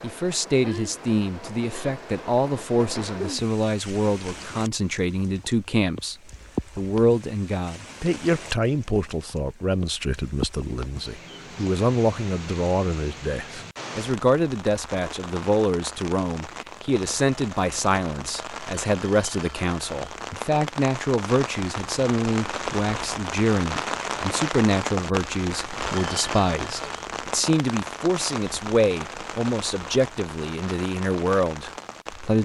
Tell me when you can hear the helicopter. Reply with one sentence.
You can't hear the helicopter here.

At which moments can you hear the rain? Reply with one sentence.
The rain can be heard from 0.0 to 32.4 s.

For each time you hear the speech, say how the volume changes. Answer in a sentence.
You can hear the speech from 0.0 to 6.2 s, at a steady volume; and from 6.8 to 32.4 s, at a steady volume.